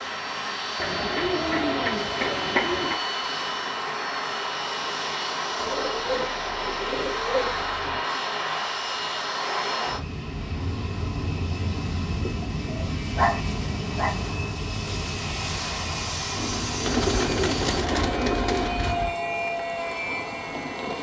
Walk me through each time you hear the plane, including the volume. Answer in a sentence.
You can hear the plane from 0.0 to 20.9 s, at a steady volume.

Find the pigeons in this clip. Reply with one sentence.
The pigeons can be heard from 0.8 to 3.0 s, from 5.5 to 8.0 s, from 12.4 to 14.2 s and from 16.4 to 19.1 s.